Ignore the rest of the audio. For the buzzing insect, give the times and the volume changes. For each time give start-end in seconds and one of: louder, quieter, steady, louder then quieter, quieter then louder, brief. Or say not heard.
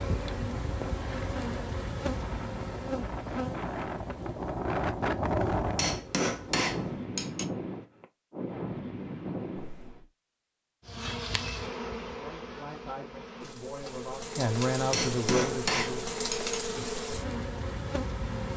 0.0-7.0 quieter
10.8-18.5 quieter then louder.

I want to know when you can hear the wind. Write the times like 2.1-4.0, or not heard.
0.0-10.1.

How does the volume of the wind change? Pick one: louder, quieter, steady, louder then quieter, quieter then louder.
louder then quieter.